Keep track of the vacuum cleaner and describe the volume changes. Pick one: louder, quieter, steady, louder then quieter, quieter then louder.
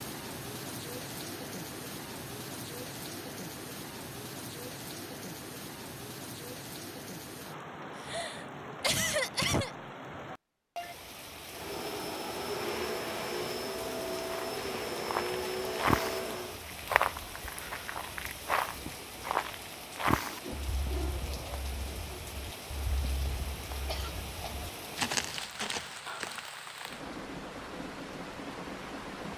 steady.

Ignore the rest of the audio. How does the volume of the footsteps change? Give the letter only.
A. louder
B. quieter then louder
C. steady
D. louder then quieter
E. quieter
B.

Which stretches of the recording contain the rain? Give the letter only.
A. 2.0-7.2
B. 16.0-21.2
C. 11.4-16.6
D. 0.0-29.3
D.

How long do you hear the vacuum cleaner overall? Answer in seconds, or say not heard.
5 s.